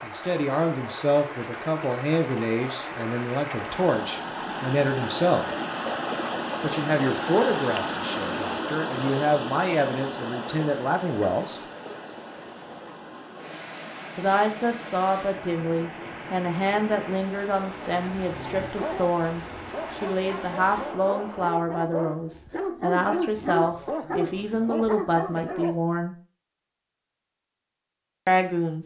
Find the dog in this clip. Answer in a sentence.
You can hear the dog from 17.8 to 25.8 s.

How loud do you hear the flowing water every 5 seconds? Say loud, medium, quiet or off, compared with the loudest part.
medium, loud, medium, medium, medium, off.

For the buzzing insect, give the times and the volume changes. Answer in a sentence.
The buzzing insect can't be heard in this clip.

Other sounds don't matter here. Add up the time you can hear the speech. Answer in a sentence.
You can hear the speech for 23 seconds altogether.